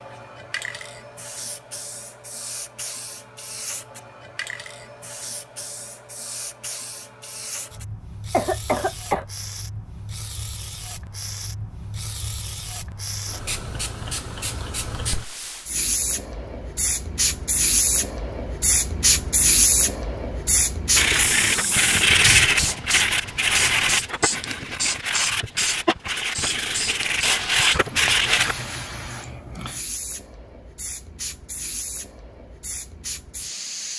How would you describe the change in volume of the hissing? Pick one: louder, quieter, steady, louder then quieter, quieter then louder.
louder then quieter.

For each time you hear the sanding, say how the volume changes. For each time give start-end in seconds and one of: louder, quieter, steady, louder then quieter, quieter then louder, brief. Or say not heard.
20.9-28.6 quieter then louder.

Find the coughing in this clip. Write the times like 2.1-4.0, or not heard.
8.3-9.2.